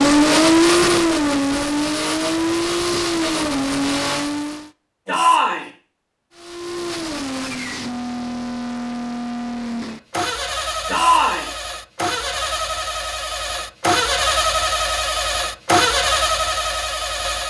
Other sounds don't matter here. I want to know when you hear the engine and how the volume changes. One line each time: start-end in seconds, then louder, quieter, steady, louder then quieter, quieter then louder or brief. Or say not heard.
0.0-4.7 quieter
6.3-17.4 louder.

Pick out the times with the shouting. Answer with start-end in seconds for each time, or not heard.
5.0-5.7, 10.8-11.5.